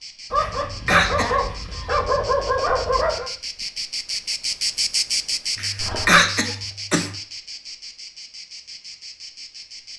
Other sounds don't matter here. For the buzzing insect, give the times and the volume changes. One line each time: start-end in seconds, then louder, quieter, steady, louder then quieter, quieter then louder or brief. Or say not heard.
0.0-9.9 louder then quieter.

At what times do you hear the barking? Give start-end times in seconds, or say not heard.
0.3-3.3, 5.8-6.2.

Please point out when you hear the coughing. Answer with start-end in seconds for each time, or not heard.
0.3-1.4, 5.5-7.1.